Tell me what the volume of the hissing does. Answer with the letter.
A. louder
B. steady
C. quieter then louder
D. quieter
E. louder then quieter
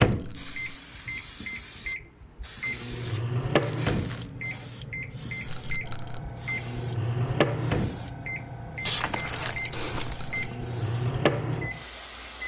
B.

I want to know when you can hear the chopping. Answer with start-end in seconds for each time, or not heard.
not heard.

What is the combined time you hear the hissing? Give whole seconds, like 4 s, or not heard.
12 s.